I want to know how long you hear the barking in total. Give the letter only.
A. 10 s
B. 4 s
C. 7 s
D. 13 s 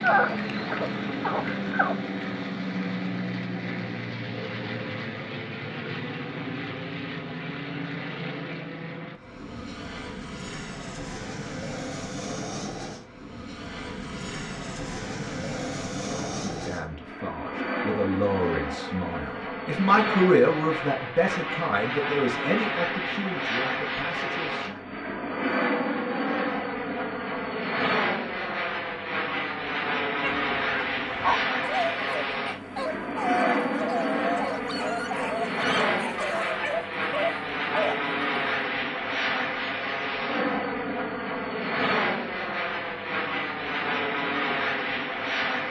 A.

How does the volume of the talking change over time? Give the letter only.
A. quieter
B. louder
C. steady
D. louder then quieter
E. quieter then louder
D.